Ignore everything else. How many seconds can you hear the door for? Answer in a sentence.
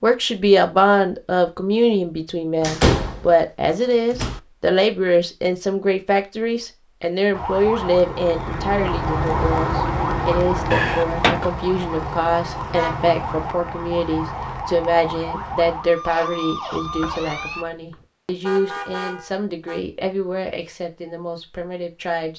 You can hear the door for 4 seconds altogether.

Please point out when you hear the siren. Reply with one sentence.
The siren can be heard from 7.3 to 17.6 s.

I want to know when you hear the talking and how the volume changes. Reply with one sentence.
The talking can be heard from 0.0 to 22.3 s, getting quieter.